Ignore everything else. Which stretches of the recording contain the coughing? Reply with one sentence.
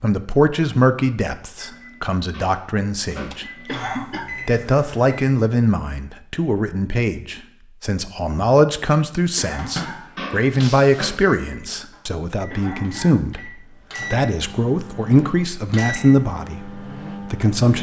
The coughing can be heard from 3.6 to 4.3 s, from 9.3 to 10.1 s and from 12.5 to 13.2 s.